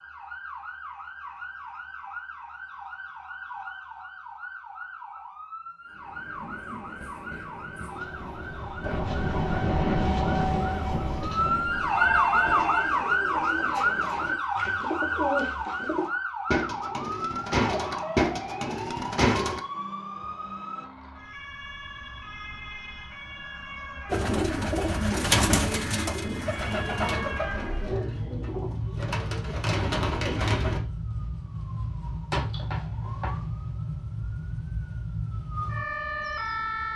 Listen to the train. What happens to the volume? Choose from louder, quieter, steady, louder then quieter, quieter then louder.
louder then quieter.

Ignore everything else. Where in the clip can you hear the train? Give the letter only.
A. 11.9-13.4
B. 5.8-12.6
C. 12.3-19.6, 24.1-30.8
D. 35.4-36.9
B.